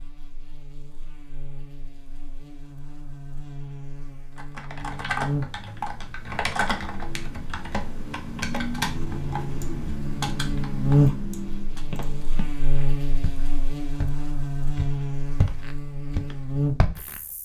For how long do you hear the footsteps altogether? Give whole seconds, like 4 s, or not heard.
5 s.